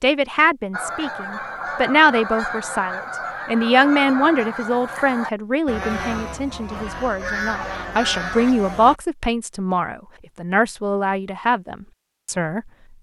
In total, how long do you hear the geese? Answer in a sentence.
You can hear the geese for 8 seconds altogether.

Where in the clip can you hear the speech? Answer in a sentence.
The speech can be heard from 0.0 to 12.7 s.